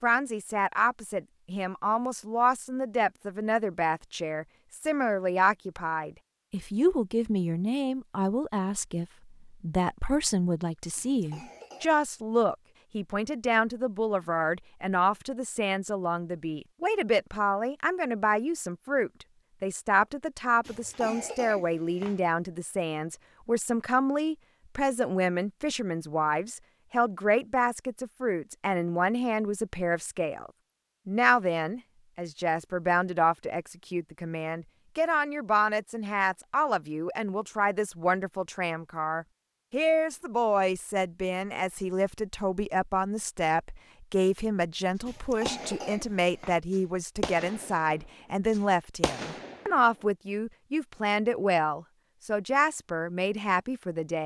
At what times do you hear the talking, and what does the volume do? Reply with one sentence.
The talking can be heard from 0.0 to 54.2 s, at a steady volume.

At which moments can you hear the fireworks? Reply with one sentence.
The fireworks can be heard from 45.0 to 46.0 s, from 46.7 to 47.9 s and from 48.5 to 49.6 s.